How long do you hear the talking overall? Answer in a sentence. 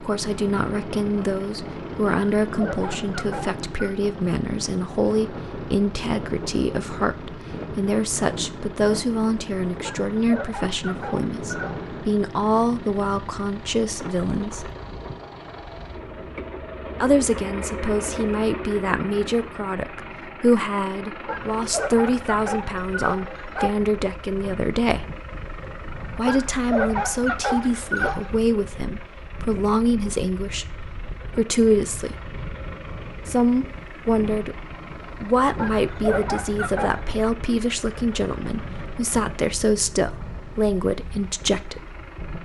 The talking can be heard for 37 seconds in total.